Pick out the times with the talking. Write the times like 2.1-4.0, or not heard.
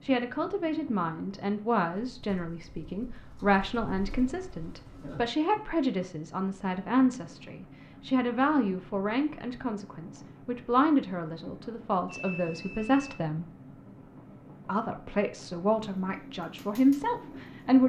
0.0-13.4, 14.7-17.8.